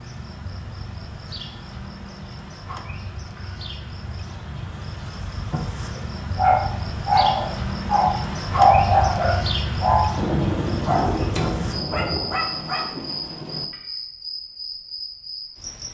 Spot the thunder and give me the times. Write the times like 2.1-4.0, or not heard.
10.2-13.7.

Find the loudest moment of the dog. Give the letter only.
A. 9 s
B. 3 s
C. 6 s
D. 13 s
A.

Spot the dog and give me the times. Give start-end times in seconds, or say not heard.
5.5-10.2, 10.8-13.2.